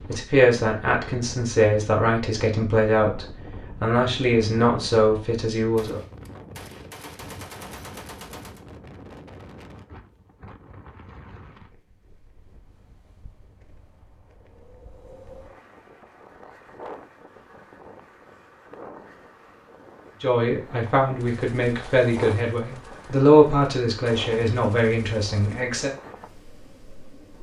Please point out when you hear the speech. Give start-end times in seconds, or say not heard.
0.1-6.0, 20.2-25.9.